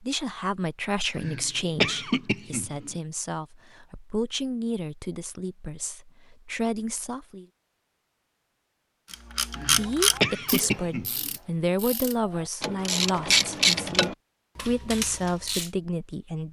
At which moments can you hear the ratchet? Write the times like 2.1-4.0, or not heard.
9.1-15.7.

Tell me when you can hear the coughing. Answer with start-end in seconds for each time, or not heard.
1.1-3.0, 9.6-11.3.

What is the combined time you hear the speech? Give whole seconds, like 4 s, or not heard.
14 s.